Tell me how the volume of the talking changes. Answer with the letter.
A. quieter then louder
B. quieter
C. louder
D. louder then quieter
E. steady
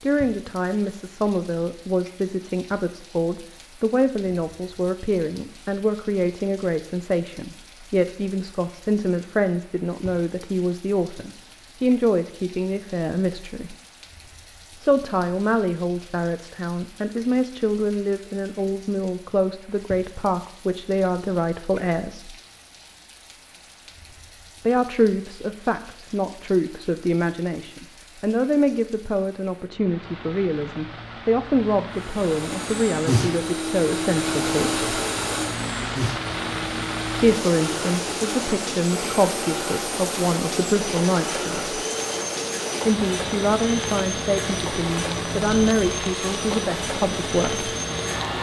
E.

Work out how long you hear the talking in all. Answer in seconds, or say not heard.
41 s.